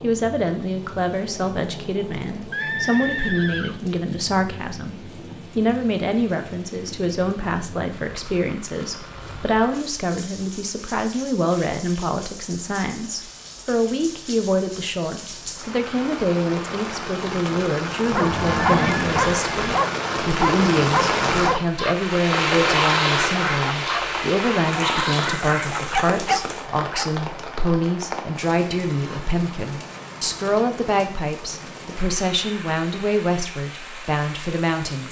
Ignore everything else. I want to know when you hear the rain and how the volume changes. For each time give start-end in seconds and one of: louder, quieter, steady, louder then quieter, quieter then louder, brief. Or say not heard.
0.0-35.0 louder then quieter.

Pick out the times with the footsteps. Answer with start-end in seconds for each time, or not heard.
not heard.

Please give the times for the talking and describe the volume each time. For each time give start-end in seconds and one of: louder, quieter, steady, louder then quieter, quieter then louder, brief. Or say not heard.
0.0-35.0 steady.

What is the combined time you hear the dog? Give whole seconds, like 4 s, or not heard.
9 s.